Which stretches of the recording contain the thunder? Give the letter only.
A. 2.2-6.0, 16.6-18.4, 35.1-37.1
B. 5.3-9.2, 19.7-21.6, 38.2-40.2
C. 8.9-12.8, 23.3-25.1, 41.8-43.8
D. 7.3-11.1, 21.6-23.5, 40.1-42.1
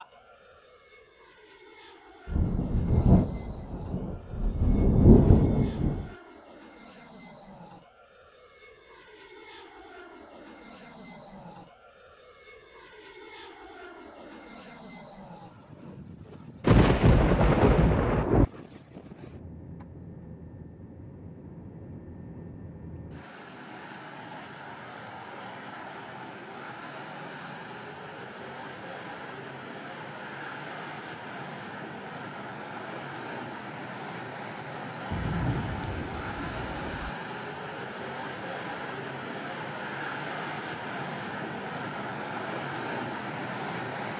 A.